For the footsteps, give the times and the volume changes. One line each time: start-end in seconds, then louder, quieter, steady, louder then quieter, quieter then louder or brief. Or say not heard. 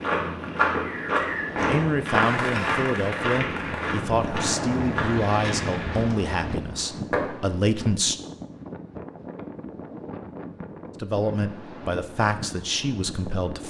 0.0-6.5 quieter.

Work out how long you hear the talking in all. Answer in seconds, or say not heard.
9 s.